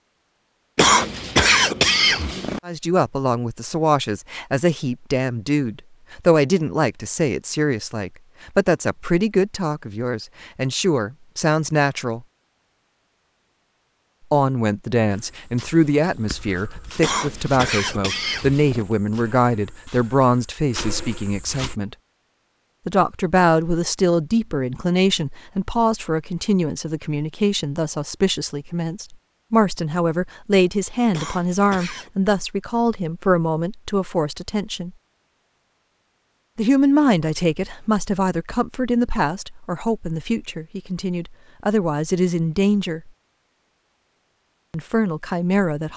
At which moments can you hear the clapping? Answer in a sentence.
You can't hear the clapping here.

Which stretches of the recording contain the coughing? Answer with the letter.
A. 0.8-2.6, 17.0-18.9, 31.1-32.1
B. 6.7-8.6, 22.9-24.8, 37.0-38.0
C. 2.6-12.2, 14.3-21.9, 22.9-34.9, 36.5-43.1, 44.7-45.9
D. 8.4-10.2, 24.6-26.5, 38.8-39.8
A.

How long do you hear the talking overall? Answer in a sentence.
You can hear the talking for 37 seconds altogether.